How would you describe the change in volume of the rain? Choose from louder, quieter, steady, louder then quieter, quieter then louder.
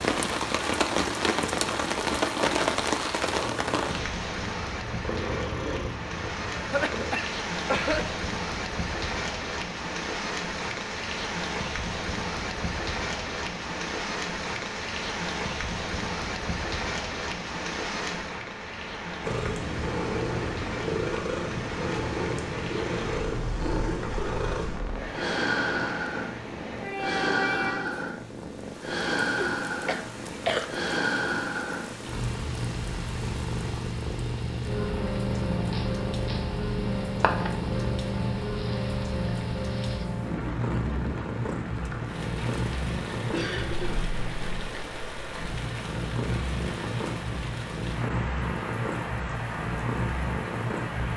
quieter.